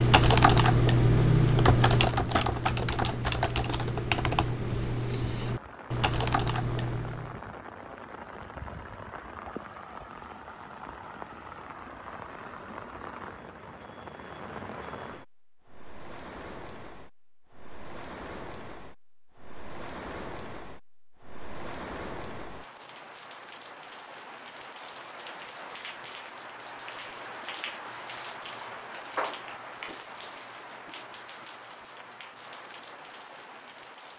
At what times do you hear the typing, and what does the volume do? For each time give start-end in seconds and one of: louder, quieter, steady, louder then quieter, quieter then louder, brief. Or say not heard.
0.0-7.3 quieter.